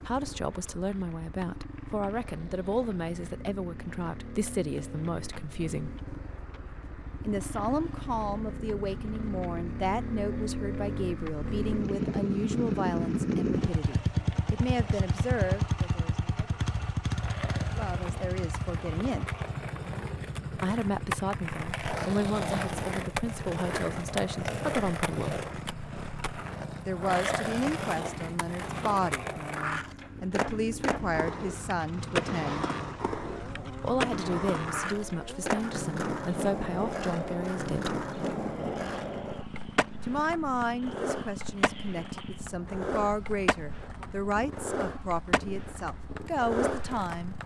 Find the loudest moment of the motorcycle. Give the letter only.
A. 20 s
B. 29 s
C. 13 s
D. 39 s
C.